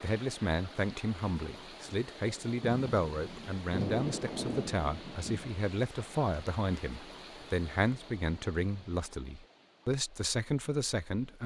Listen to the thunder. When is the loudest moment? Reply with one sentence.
The volume of the thunder peaks at 4 seconds.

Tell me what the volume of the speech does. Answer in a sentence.
The loudness of the speech stays about the same.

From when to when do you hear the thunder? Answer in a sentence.
The thunder can be heard from 2.6 to 5.5 s.